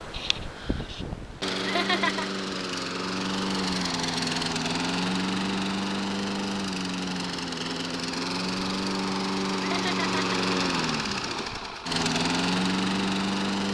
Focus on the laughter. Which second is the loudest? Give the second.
2 s.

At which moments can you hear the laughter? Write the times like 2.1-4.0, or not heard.
1.6-2.3, 9.6-10.4.